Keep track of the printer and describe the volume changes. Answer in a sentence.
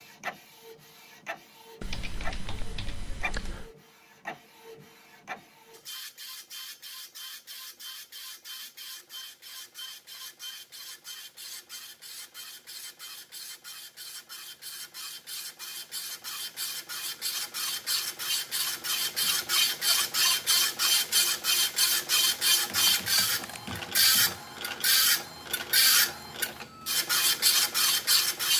The loudness of the printer goes up.